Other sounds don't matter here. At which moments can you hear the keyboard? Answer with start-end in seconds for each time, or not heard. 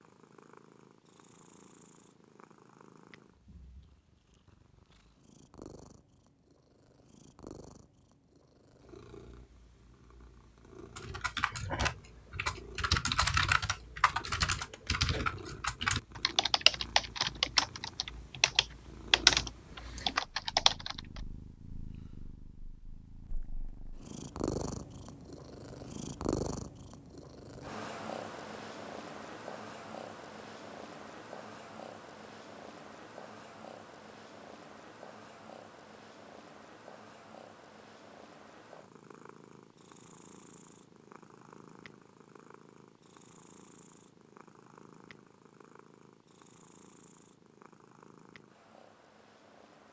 10.9-21.2.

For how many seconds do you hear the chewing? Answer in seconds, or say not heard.
not heard.